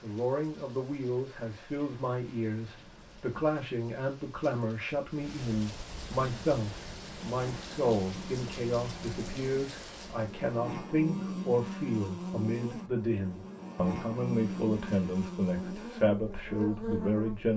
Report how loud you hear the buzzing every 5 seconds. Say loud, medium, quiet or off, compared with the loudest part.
off, medium, loud, loud.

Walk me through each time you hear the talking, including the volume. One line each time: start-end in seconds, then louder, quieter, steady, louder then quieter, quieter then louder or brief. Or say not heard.
0.0-17.5 steady.